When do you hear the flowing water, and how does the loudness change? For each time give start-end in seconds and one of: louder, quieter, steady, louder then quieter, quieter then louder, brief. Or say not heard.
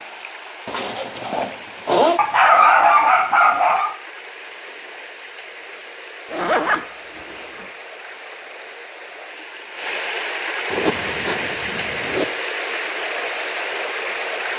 0.0-14.5 louder.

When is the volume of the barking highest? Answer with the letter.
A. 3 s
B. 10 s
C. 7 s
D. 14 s
A.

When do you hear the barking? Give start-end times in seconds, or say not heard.
2.1-4.0.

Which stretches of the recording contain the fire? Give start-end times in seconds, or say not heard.
not heard.